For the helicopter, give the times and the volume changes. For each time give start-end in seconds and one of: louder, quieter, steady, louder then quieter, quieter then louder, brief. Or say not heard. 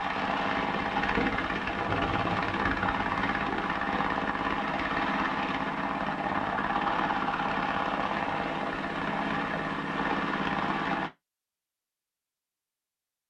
0.0-11.1 steady.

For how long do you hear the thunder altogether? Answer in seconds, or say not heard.
3 s.